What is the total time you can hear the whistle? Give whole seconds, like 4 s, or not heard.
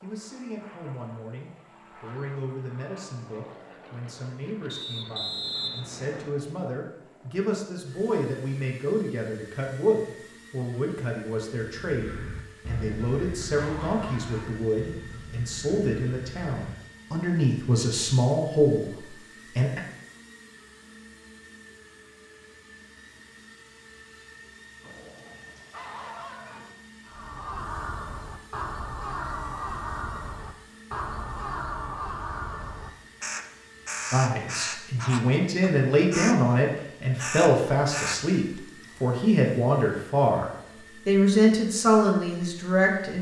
2 s.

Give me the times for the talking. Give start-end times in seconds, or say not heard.
0.0-19.8, 34.1-43.1.